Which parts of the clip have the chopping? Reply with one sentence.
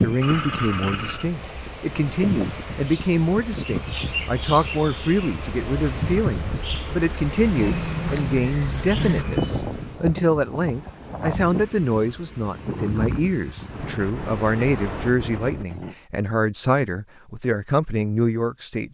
The chopping can't be heard in this clip.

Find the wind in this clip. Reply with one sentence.
The wind can be heard from 0.0 to 15.7 s.